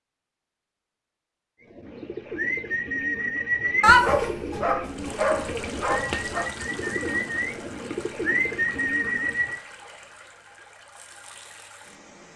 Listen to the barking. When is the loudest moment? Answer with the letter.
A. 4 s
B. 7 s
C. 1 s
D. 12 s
A.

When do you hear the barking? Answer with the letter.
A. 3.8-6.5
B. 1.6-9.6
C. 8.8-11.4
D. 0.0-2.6
A.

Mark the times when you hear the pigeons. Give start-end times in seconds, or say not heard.
1.6-9.6.